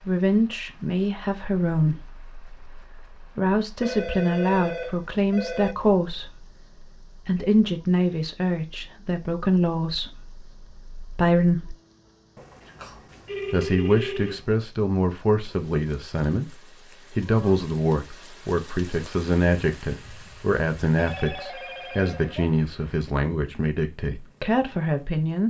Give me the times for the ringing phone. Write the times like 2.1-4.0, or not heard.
3.8-5.8, 12.3-14.6, 20.9-22.4.